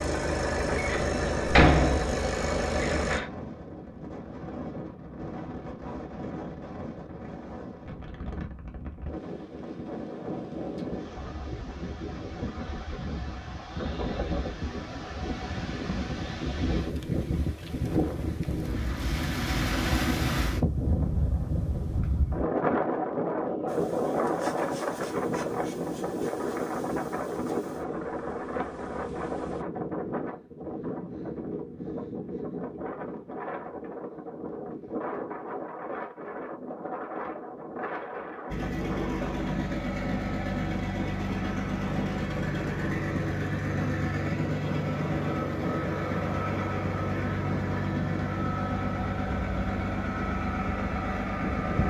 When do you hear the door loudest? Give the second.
2 s.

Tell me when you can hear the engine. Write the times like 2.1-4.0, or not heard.
0.0-3.2, 38.5-51.8.